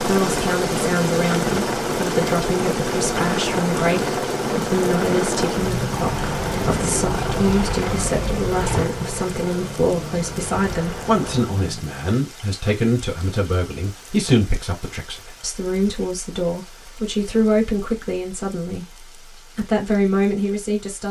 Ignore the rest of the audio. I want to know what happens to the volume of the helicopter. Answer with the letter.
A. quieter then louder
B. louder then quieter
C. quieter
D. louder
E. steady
C.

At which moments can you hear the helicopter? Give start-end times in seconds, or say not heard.
0.0-12.0.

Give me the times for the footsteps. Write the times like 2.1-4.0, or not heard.
not heard.